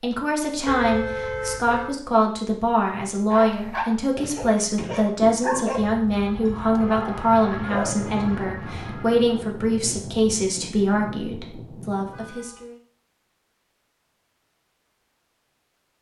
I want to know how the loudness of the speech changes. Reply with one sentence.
The volume of the speech stays about the same.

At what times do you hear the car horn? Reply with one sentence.
You can hear the car horn from 0.7 to 2.0 s, from 5.7 to 7.0 s and from 12.0 to 12.7 s.